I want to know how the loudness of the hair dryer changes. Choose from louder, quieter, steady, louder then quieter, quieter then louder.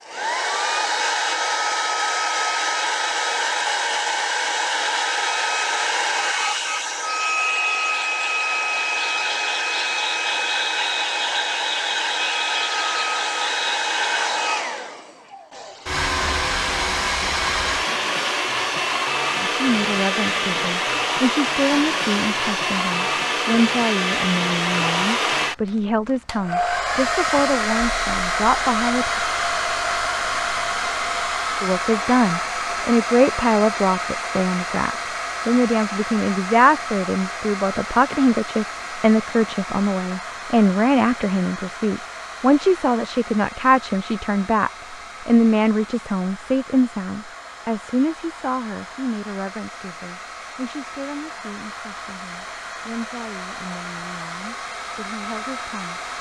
quieter.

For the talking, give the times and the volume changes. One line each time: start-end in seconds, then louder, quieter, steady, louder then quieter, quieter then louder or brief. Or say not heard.
19.4-29.2 steady
31.6-56.0 quieter.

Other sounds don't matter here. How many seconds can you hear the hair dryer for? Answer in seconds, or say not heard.
56 s.